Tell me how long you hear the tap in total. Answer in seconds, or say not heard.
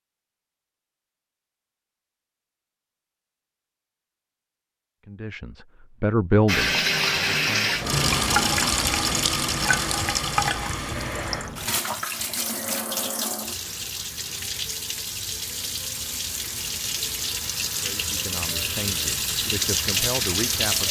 14 s.